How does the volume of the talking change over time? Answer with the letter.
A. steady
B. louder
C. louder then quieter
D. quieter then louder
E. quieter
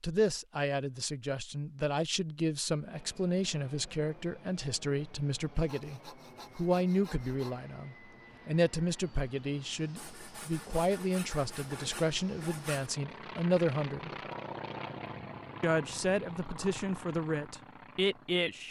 A.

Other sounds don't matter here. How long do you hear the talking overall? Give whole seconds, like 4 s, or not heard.
17 s.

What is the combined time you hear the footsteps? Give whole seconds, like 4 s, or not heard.
not heard.